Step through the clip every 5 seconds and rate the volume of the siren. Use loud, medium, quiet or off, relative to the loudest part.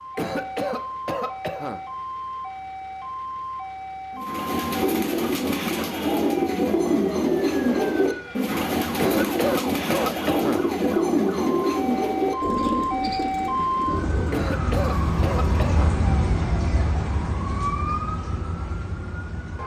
medium, medium, loud, loud.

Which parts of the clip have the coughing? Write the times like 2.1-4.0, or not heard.
0.1-1.8, 8.9-10.6, 14.3-15.9.